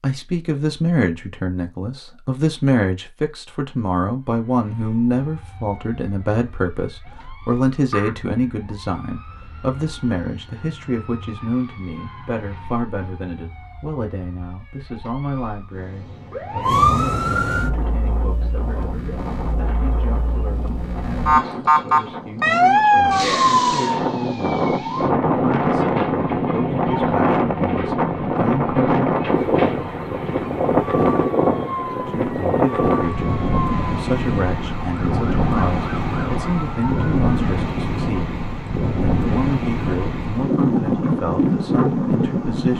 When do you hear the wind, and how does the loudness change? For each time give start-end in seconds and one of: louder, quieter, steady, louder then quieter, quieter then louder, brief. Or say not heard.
17.5-42.7 louder.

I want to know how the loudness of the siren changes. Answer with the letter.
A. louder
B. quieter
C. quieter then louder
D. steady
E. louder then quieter
E.